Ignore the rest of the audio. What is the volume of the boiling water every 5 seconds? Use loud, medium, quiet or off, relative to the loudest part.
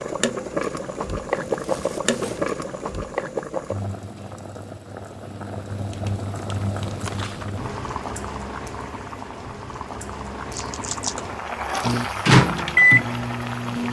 loud, medium, loud.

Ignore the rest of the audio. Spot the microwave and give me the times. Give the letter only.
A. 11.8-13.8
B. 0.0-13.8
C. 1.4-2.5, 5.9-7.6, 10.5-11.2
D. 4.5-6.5
A.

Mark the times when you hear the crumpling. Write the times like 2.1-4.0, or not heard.
1.4-2.5, 5.9-7.6, 10.5-11.2.